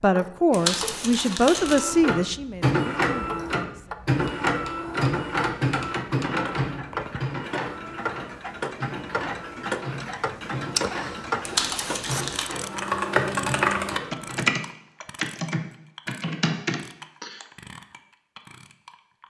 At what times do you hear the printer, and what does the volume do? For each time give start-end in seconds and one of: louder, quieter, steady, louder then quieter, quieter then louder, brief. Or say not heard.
1.6-14.5 quieter.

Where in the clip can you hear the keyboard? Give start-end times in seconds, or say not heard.
12.4-17.4.